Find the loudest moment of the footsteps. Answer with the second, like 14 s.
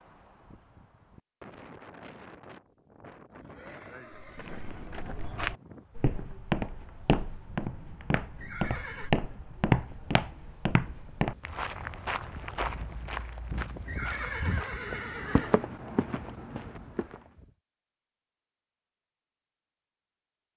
10 s.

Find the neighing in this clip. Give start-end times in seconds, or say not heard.
3.3-5.0, 8.3-9.1, 13.8-15.7.